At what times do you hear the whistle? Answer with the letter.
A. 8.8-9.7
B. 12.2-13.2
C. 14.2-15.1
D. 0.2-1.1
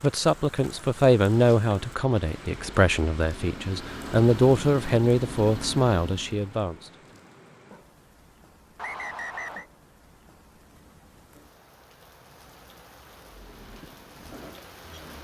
A.